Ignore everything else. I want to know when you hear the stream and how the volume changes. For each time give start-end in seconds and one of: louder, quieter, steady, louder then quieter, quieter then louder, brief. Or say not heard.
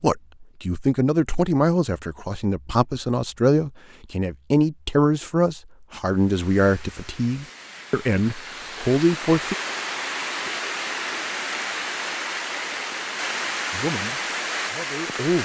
6.0-15.4 louder.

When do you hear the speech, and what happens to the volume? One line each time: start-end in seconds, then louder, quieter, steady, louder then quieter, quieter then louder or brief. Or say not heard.
0.0-9.6 steady
13.7-15.4 brief.